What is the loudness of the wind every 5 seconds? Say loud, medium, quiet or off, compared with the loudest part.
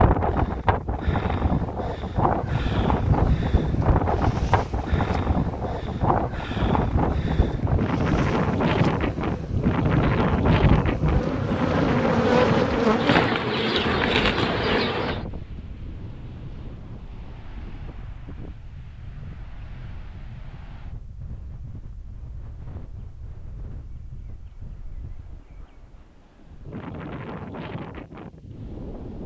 loud, loud, loud, quiet, quiet, quiet.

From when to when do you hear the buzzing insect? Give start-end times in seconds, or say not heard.
2.4-15.2.